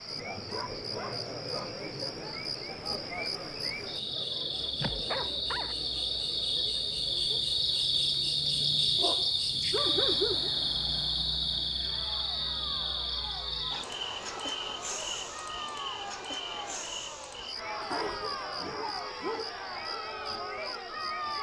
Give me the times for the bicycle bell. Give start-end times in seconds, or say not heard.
not heard.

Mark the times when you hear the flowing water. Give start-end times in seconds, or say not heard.
not heard.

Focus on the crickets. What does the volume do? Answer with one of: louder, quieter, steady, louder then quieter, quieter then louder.
louder then quieter.